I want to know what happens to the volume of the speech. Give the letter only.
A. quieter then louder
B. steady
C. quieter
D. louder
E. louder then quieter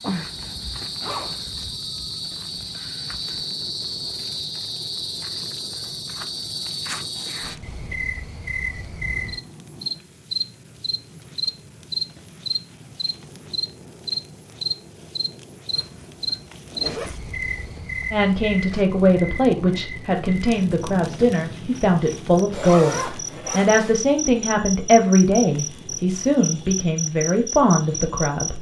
B.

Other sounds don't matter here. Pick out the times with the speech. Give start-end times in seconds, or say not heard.
18.1-28.5.